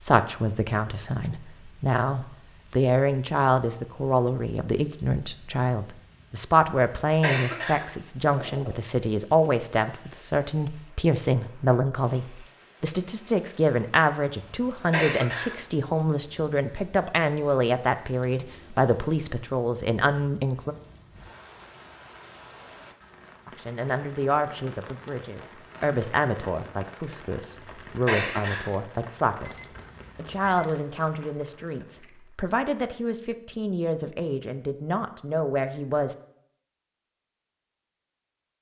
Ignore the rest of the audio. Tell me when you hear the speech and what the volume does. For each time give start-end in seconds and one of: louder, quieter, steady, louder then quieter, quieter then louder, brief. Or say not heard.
0.0-20.8 steady
23.4-36.1 steady.